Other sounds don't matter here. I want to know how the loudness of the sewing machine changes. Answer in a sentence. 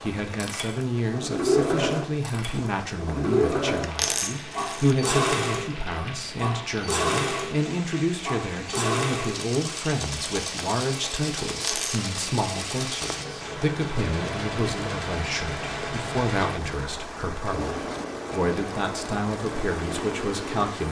The volume of the sewing machine goes down.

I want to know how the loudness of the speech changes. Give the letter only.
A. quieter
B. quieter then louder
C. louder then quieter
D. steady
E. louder
D.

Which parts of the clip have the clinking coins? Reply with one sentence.
The clinking coins can be heard from 4.0 to 5.0 s and from 11.6 to 12.1 s.